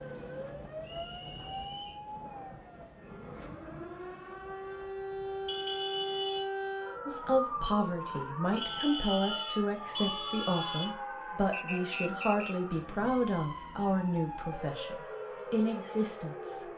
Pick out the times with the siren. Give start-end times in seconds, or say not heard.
0.0-16.7.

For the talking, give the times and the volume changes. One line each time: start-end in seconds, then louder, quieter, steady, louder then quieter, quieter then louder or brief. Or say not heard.
7.0-16.6 steady.